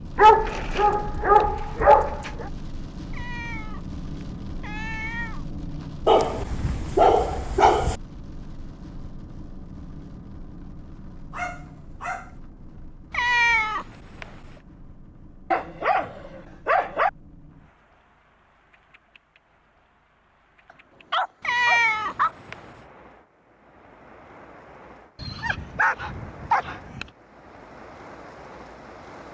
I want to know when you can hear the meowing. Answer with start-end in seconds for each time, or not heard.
3.1-5.5, 13.1-14.6, 21.4-22.9.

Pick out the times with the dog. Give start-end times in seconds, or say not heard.
0.1-2.5, 6.0-8.0, 11.3-12.3, 15.5-17.1, 21.1-22.4, 25.1-27.1.